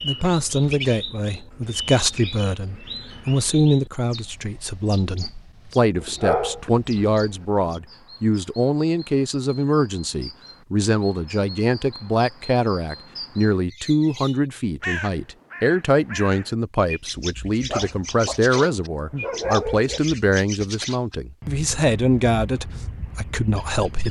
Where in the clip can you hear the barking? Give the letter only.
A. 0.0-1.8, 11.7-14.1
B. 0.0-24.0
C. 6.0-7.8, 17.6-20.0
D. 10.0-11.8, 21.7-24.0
C.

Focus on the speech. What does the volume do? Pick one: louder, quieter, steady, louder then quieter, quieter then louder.
steady.